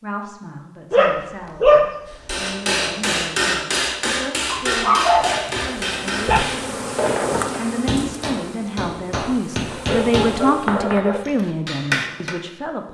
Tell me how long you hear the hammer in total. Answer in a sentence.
You can hear the hammer for 10 seconds altogether.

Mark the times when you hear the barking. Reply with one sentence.
The barking can be heard from 0.9 to 2.4 s, from 4.5 to 6.5 s and from 9.7 to 11.3 s.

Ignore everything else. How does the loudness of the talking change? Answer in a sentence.
The loudness of the talking goes up.